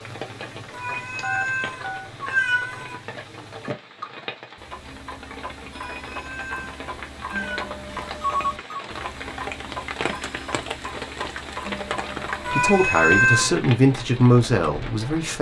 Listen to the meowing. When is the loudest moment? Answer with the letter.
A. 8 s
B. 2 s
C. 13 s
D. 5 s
C.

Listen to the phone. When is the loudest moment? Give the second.
8 s.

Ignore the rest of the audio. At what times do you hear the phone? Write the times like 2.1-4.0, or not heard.
1.2-2.1, 7.8-8.8.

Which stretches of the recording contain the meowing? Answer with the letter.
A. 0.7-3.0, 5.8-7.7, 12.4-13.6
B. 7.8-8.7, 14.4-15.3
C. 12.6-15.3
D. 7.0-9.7
A.